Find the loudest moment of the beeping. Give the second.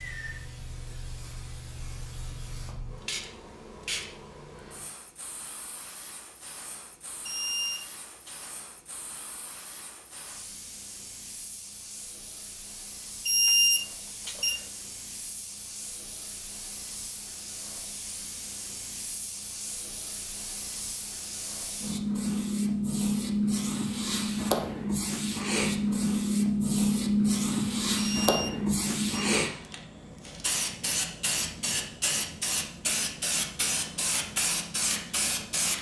14 s.